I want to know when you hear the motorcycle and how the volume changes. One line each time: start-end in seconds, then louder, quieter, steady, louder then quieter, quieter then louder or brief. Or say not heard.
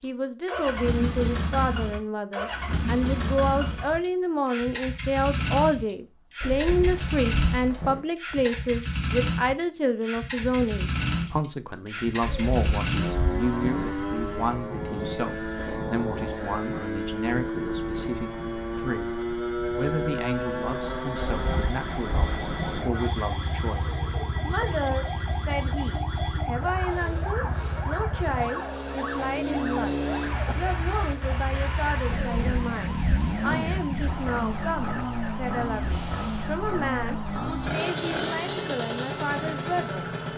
0.0-40.3 steady.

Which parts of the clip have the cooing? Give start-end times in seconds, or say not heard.
6.4-8.1, 12.2-13.9, 21.2-22.9, 32.0-33.8.